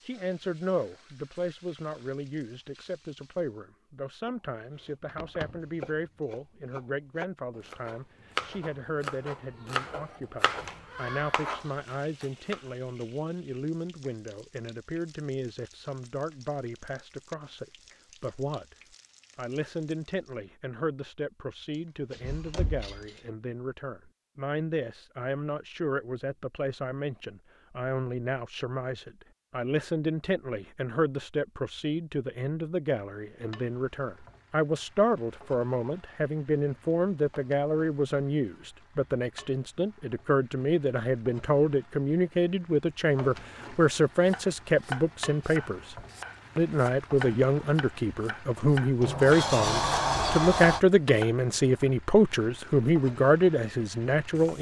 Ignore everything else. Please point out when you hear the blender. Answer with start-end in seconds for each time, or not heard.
not heard.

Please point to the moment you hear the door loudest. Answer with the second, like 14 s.
50 s.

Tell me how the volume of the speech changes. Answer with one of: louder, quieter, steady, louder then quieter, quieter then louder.
louder.